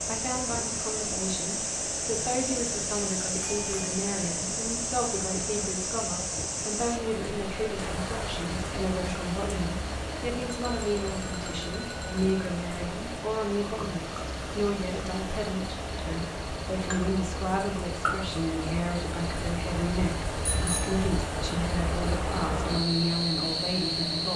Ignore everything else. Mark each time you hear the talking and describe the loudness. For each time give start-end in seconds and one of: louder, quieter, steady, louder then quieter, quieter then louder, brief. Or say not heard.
0.1-24.3 steady.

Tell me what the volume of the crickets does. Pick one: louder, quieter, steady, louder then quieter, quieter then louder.
quieter then louder.